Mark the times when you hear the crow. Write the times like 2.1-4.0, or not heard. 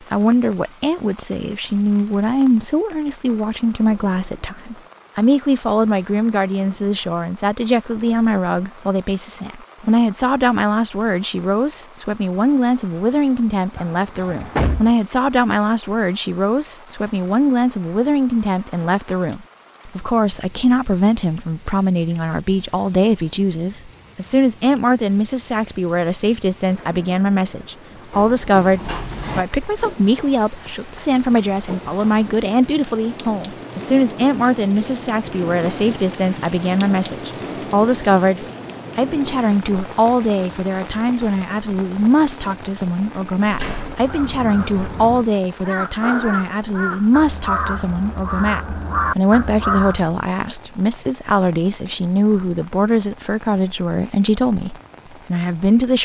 43.9-50.1.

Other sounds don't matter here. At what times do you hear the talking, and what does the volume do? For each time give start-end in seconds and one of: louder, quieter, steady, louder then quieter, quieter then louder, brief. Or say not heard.
0.1-56.0 steady.